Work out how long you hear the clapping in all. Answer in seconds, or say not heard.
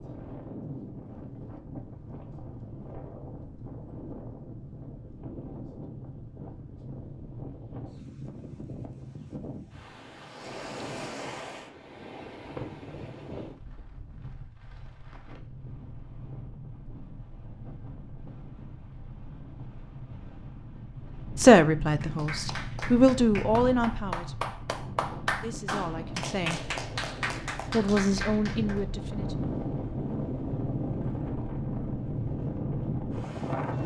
7 s.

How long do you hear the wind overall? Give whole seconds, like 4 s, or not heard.
34 s.